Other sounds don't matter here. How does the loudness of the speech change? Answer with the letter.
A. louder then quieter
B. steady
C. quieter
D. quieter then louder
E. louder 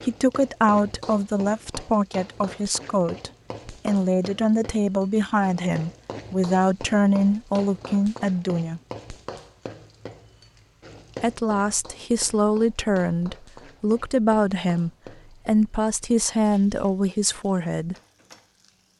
B.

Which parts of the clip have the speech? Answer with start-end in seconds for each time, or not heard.
0.1-8.8, 11.2-17.9.